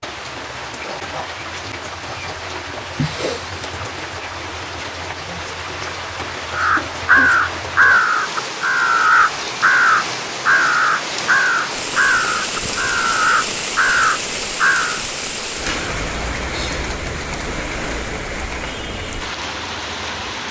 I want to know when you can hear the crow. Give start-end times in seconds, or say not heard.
6.5-15.0.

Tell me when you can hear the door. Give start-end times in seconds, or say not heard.
3.0-3.7.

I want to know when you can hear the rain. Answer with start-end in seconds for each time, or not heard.
0.0-20.4.